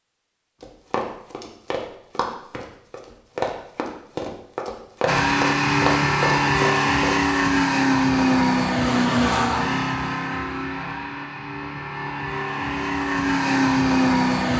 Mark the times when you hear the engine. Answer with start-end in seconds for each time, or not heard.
5.0-14.5.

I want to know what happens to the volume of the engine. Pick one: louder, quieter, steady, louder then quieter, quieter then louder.
quieter then louder.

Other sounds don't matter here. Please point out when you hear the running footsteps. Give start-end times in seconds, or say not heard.
0.6-7.2.